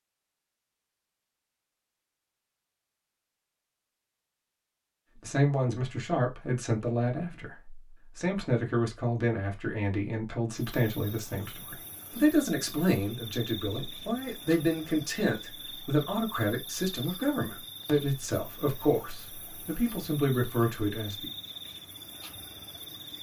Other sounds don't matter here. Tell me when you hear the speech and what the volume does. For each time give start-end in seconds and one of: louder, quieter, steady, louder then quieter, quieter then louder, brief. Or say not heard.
5.2-21.3 steady.